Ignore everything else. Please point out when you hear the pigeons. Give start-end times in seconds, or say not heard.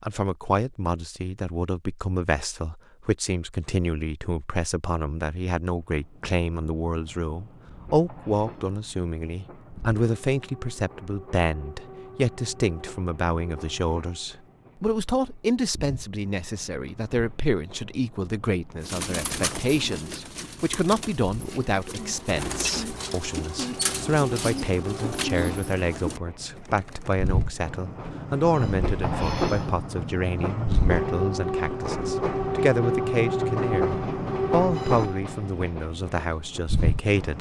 18.8-27.4.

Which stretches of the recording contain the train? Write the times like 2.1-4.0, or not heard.
5.7-37.3.